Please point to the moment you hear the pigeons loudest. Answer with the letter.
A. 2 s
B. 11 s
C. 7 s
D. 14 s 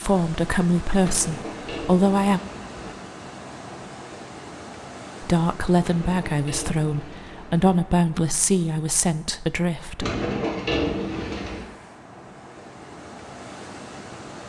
B.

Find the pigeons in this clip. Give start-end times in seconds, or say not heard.
1.0-3.0, 5.8-7.8, 9.9-11.7.